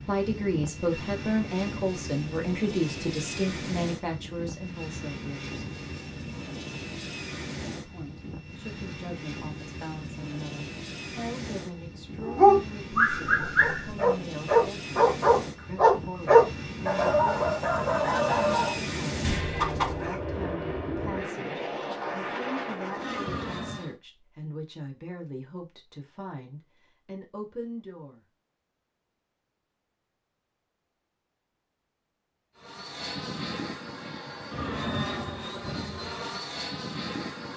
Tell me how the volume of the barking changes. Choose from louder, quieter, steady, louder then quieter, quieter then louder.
louder then quieter.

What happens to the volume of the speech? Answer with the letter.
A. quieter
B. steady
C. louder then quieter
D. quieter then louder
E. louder
A.